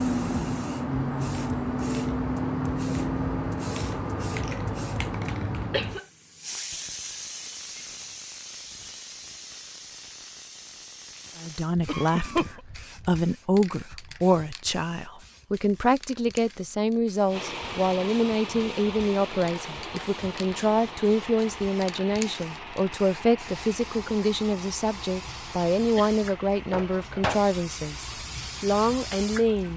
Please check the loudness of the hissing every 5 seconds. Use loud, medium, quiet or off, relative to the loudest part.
loud, medium, quiet, quiet, quiet, medium.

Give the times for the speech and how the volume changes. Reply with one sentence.
You can hear the speech from 11.3 to 29.7 s, at a steady volume.